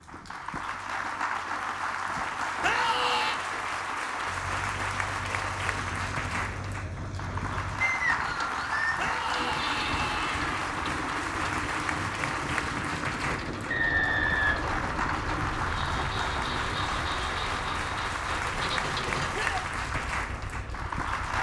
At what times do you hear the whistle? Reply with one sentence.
The whistle can be heard from 7.8 to 8.9 s and from 13.7 to 14.8 s.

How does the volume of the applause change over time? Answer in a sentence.
The volume of the applause stays about the same.